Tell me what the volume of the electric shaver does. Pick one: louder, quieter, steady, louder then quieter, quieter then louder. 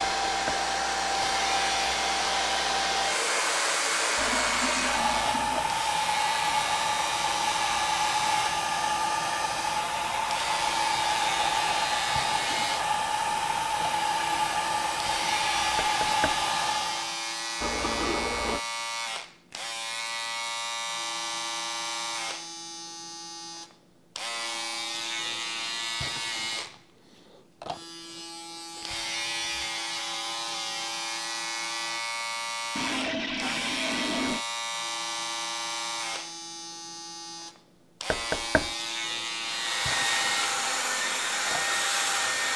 steady.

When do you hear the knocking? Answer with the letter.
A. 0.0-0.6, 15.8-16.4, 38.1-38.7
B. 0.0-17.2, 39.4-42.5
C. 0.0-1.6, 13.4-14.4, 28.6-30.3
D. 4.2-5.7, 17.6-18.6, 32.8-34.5
A.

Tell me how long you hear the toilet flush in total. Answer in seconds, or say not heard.
4 s.